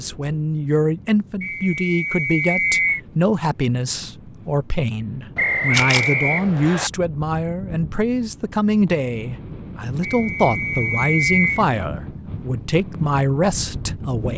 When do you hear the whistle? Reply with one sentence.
You can hear the whistle from 1.4 to 3.0 s, from 5.3 to 6.9 s and from 10.0 to 11.7 s.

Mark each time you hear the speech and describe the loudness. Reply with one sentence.
You can hear the speech from 0.0 to 14.3 s, at a steady volume.